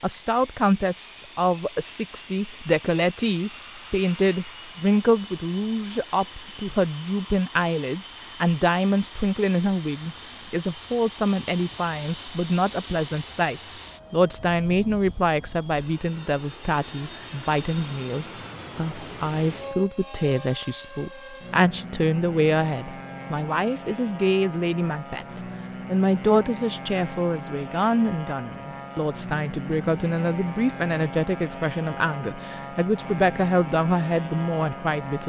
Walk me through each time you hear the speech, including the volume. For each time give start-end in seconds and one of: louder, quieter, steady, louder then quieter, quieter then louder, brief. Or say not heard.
0.0-35.2 steady.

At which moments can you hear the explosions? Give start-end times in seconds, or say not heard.
not heard.